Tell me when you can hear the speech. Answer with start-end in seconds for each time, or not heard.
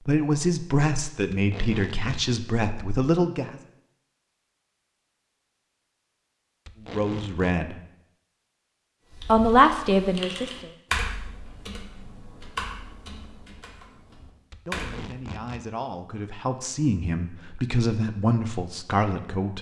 0.1-3.6, 6.9-7.8, 9.2-10.7, 14.7-19.5.